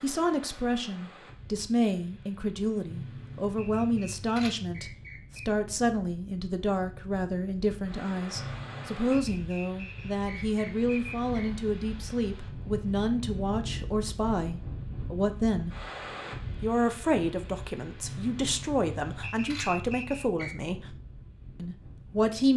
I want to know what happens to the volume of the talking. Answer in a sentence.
The loudness of the talking stays about the same.